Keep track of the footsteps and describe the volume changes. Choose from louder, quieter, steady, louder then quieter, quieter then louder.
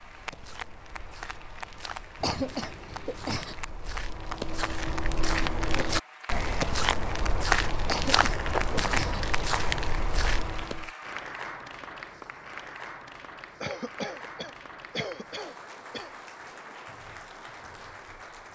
louder.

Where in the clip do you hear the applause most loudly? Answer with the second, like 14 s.
9 s.